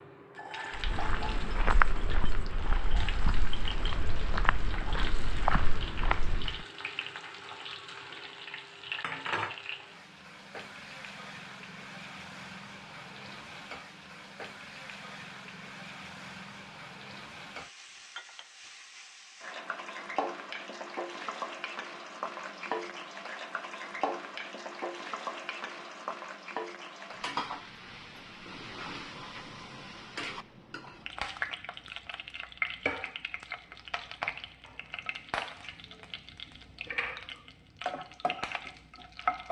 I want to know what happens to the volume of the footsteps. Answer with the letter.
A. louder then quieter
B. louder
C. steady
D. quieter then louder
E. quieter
D.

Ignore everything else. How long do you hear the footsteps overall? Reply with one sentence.
The footsteps can be heard for 6 seconds in total.